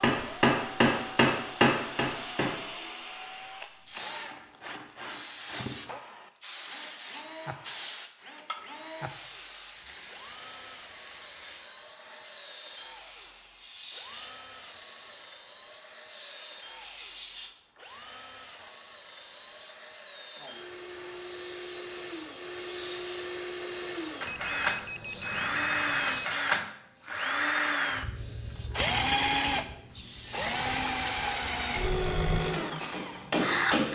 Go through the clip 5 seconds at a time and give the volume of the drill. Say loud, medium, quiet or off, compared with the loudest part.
quiet, quiet, quiet, quiet, medium, loud, loud.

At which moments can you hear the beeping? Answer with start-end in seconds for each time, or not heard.
24.2-26.2.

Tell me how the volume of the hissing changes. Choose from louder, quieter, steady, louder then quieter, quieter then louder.
steady.